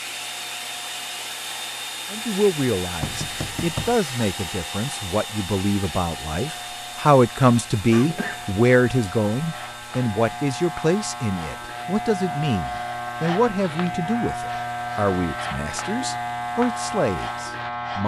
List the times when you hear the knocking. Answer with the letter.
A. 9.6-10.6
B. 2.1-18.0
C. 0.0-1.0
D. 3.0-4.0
D.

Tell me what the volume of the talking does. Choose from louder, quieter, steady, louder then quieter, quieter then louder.
louder then quieter.